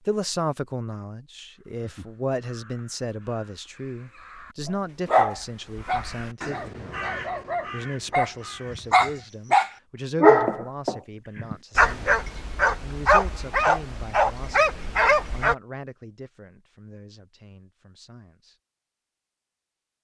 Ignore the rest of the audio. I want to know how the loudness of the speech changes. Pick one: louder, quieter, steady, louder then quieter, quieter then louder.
quieter.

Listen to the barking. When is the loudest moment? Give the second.
10 s.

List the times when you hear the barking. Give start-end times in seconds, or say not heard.
5.0-15.6.